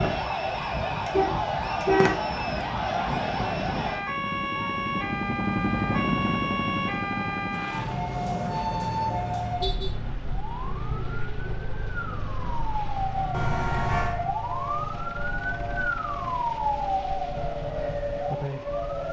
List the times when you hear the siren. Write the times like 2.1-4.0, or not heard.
0.0-19.0.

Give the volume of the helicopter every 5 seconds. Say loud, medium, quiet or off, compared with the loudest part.
medium, loud, quiet, quiet.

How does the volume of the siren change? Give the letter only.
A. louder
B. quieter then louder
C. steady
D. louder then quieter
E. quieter
C.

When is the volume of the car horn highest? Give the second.
2 s.